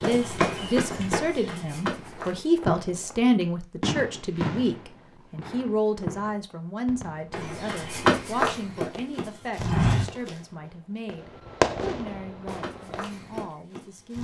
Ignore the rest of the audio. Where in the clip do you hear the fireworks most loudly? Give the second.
12 s.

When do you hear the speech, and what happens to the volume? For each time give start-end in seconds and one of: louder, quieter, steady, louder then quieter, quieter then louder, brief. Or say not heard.
0.0-14.1 quieter.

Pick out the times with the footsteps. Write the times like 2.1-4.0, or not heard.
0.0-2.5, 7.3-10.3, 12.4-14.1.